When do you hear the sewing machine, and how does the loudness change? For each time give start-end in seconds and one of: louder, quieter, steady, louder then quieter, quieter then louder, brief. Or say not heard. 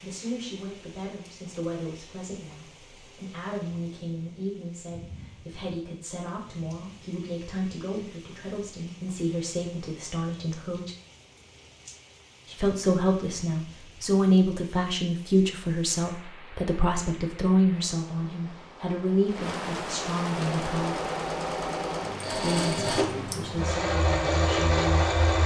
20.4-25.4 louder.